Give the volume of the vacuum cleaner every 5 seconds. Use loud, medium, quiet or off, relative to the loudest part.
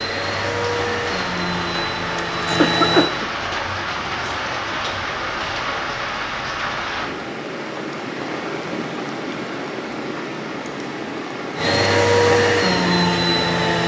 medium, off, loud.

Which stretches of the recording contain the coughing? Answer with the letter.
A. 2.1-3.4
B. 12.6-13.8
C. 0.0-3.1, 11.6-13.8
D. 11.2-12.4
A.